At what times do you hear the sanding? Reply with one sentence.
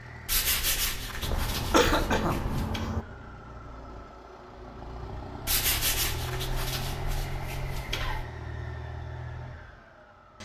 You can hear the sanding from 0.2 to 2.9 s and from 5.5 to 8.2 s.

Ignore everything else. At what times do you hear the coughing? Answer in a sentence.
You can hear the coughing from 1.2 to 3.0 s.